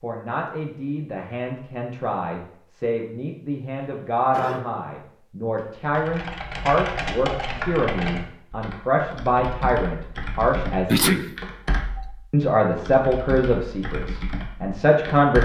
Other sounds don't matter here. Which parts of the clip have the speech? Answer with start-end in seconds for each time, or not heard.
0.0-11.2, 12.3-15.4.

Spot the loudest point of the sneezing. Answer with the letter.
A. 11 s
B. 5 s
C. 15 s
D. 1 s
A.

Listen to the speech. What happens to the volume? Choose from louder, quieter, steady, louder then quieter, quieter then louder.
louder.